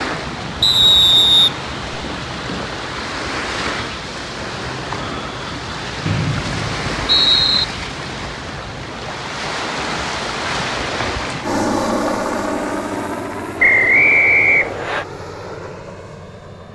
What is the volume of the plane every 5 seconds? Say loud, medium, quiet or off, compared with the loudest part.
off, off, loud, medium.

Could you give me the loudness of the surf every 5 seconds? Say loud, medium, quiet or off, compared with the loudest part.
loud, loud, loud, off.